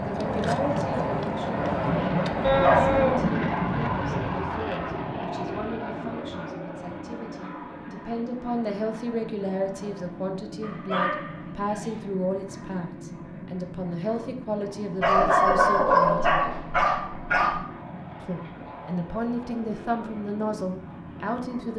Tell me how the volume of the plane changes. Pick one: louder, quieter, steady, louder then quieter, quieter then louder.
quieter.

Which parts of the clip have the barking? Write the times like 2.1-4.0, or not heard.
2.4-3.3, 10.6-11.9, 15.0-17.6.